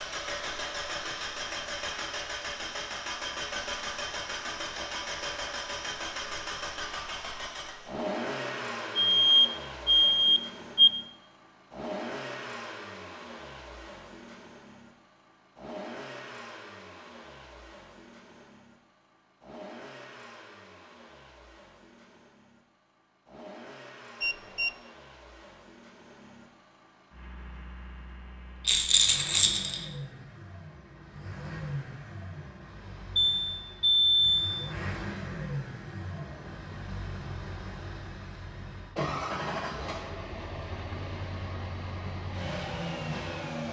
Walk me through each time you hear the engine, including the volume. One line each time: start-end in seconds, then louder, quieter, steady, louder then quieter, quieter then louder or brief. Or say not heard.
0.0-43.6 quieter then louder.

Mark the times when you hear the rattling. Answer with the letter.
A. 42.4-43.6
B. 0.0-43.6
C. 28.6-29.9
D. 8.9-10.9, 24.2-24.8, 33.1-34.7
C.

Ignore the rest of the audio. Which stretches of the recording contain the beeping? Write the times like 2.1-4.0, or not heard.
8.9-10.9, 24.2-24.8, 33.1-34.7.